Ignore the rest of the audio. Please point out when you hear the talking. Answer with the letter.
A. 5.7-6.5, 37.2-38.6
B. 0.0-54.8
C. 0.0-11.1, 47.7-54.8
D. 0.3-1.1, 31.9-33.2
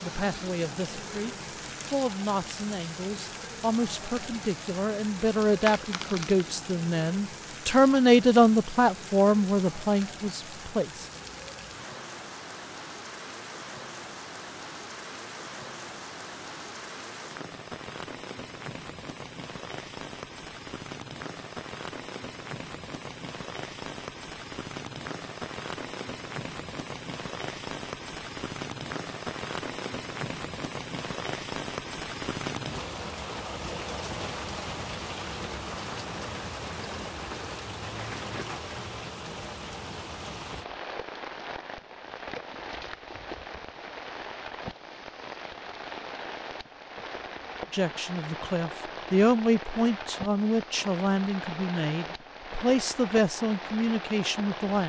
C.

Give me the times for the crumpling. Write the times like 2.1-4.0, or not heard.
5.7-6.5, 37.2-38.6.